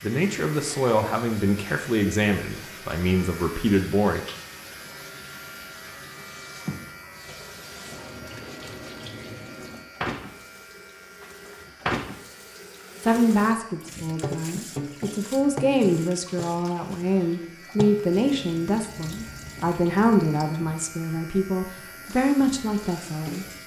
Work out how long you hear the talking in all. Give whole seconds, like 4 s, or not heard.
15 s.